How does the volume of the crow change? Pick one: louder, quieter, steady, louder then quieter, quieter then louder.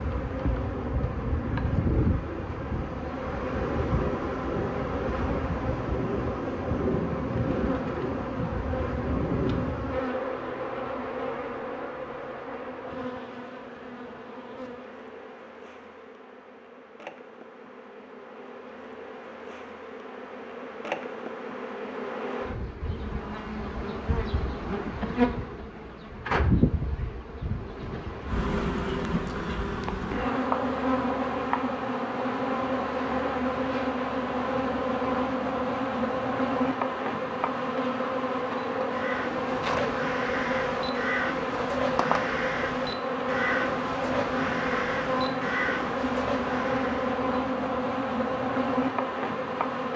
steady.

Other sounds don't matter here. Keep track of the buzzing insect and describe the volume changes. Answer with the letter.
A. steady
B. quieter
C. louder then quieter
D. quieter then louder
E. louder
D.